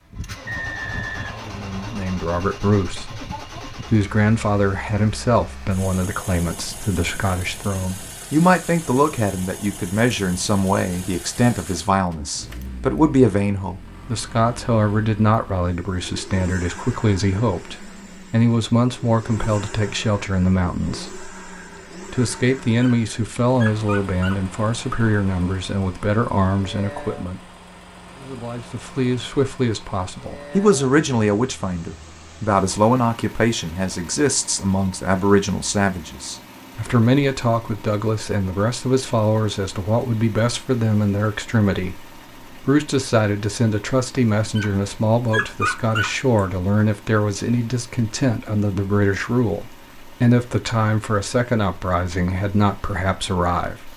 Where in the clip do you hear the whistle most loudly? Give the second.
1 s.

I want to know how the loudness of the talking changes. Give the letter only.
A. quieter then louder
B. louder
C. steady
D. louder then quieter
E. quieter
C.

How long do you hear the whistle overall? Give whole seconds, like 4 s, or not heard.
2 s.